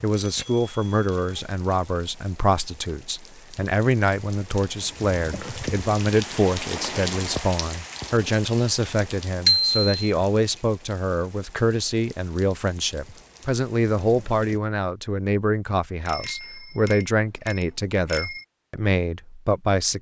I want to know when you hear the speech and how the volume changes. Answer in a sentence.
The speech can be heard from 0.0 to 19.9 s, at a steady volume.